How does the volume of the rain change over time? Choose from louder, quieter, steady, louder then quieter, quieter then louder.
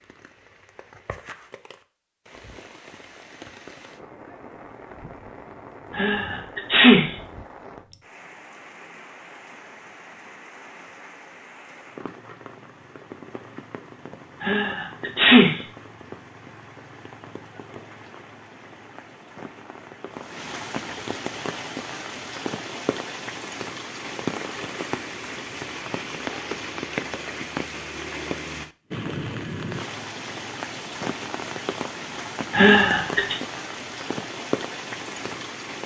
louder.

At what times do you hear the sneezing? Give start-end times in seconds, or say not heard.
5.9-7.1, 14.4-15.6, 32.5-33.4.